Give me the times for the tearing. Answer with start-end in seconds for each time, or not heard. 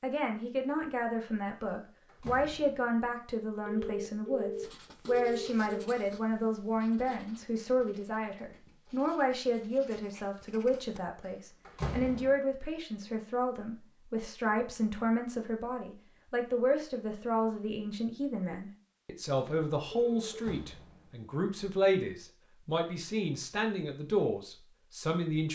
not heard.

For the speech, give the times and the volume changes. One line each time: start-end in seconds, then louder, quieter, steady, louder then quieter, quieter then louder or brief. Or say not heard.
0.0-25.4 steady.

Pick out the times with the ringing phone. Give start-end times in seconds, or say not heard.
3.6-5.8, 19.4-20.4.